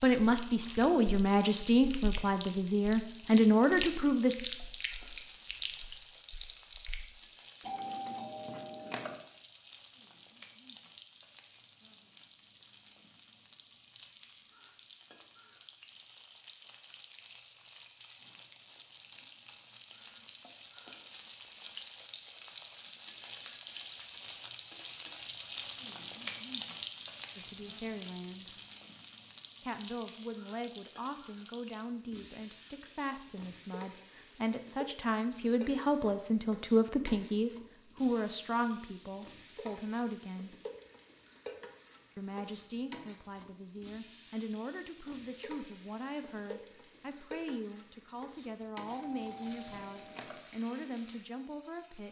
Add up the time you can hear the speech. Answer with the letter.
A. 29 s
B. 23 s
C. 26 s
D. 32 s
C.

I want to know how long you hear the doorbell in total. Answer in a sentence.
You can hear the doorbell for 3 seconds altogether.